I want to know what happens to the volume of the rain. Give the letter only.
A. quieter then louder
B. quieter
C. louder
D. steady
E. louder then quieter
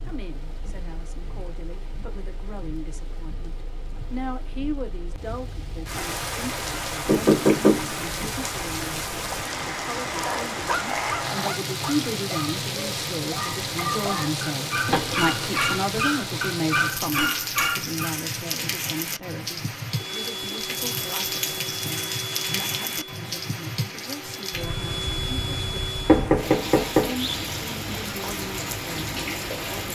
C.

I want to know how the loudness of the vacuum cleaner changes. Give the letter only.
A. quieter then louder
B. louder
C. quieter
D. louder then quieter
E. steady
A.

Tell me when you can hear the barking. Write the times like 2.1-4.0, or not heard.
10.1-17.9.